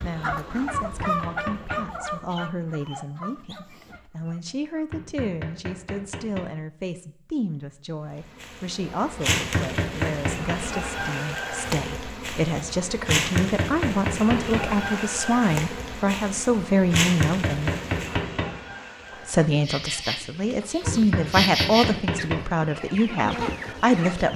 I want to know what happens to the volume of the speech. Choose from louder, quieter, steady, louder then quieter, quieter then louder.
louder.